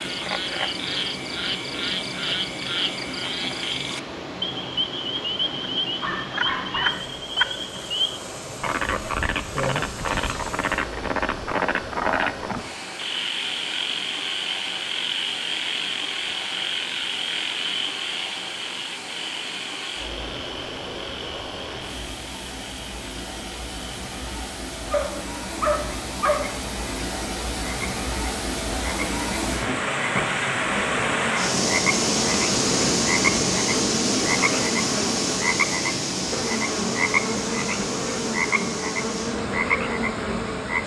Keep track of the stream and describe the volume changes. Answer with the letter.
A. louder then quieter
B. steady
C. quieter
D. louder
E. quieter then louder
D.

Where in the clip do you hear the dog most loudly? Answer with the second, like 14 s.
26 s.